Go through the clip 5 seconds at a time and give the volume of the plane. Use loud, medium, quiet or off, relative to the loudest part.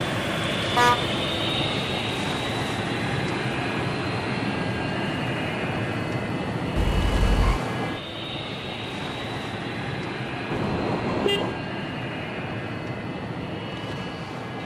loud, loud, medium.